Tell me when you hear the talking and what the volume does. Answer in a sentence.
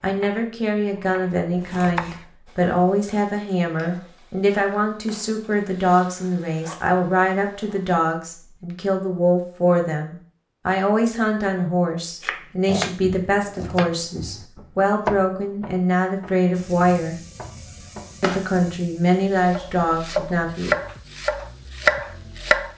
You can hear the talking from 0.0 to 17.1 s, at a steady volume; and briefly from 18.2 to 20.8 s.